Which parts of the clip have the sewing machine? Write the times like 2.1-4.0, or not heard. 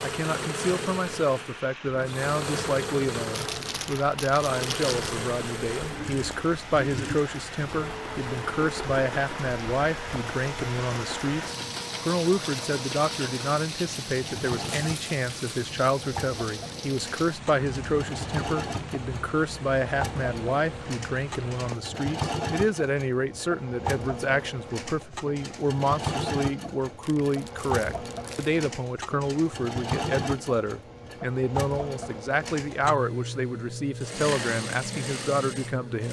0.0-36.0.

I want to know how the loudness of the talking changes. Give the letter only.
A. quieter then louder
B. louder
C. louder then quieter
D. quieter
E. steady
E.